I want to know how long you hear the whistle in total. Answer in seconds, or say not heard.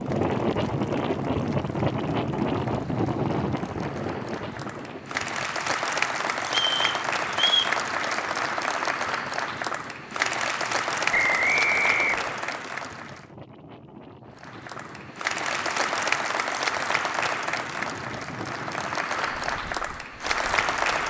3 s.